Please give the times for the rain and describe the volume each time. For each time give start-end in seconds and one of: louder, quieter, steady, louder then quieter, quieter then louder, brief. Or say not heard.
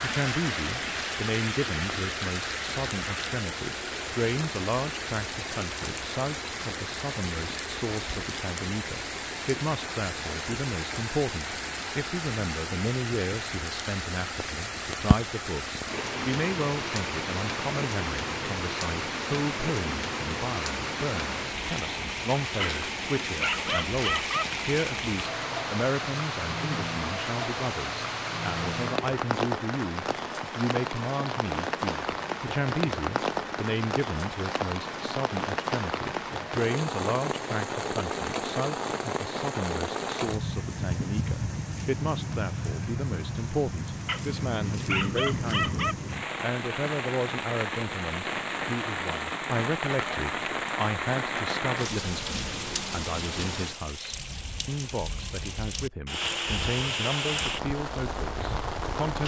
0.0-59.2 steady.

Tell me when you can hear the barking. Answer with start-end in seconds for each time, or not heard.
22.6-24.4, 44.0-46.0.